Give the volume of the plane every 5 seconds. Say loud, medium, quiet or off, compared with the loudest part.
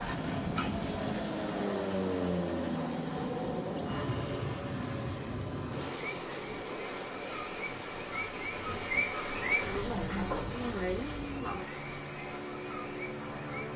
loud, medium, medium.